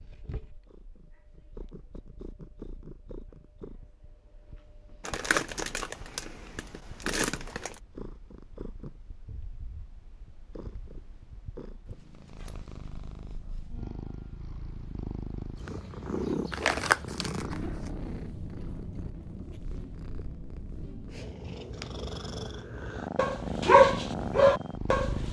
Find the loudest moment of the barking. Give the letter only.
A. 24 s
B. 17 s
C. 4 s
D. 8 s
A.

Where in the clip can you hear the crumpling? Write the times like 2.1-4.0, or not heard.
5.0-7.8, 16.5-17.9.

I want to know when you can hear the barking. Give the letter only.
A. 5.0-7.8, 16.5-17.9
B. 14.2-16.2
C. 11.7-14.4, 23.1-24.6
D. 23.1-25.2
D.